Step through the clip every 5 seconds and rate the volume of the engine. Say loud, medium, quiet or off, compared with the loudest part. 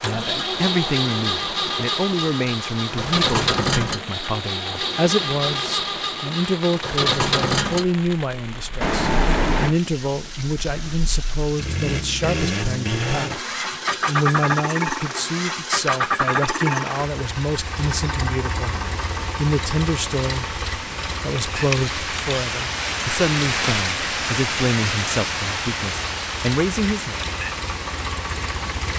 loud, loud, loud, loud, medium, medium.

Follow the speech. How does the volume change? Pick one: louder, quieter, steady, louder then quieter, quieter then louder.
steady.